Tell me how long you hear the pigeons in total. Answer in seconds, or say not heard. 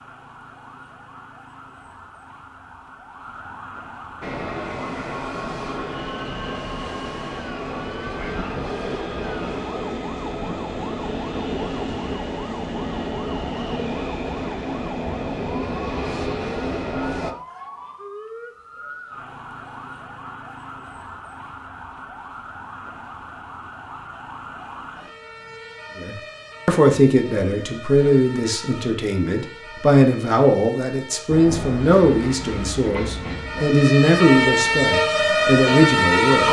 not heard.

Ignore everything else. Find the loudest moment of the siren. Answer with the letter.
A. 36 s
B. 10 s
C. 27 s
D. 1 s
A.